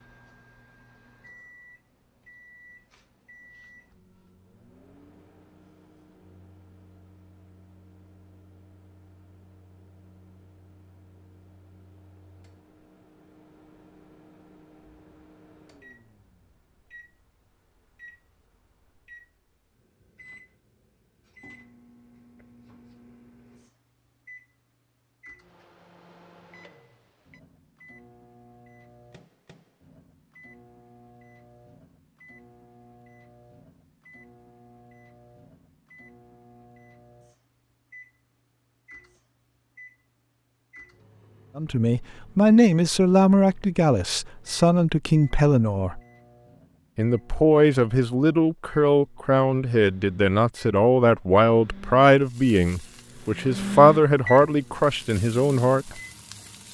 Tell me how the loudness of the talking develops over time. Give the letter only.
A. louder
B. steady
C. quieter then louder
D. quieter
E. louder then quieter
B.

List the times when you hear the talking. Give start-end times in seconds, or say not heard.
41.5-46.0, 47.0-55.9.